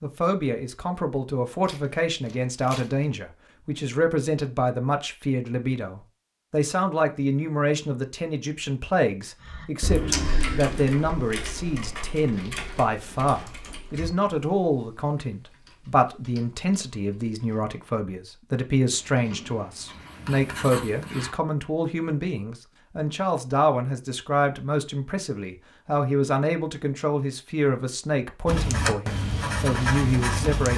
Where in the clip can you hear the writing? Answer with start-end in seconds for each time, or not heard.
18.9-21.3, 28.4-30.7.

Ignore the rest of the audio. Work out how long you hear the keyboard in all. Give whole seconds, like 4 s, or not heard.
8 s.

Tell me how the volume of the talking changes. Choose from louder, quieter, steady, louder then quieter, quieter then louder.
steady.